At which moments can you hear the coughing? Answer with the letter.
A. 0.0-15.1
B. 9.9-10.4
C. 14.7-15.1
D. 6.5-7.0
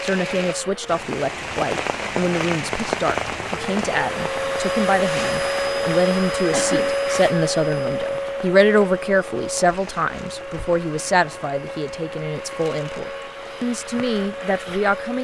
D.